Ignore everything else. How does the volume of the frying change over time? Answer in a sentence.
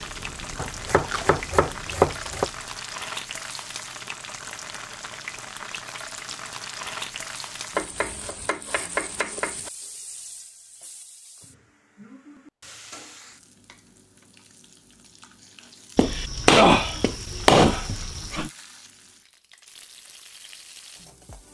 The loudness of the frying goes down.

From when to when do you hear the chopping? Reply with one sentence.
You can hear the chopping from 0.6 to 2.5 s, from 7.7 to 9.7 s and from 15.9 to 18.5 s.